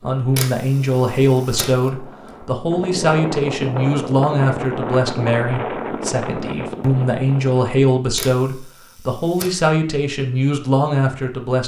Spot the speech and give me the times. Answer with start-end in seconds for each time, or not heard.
0.0-11.6.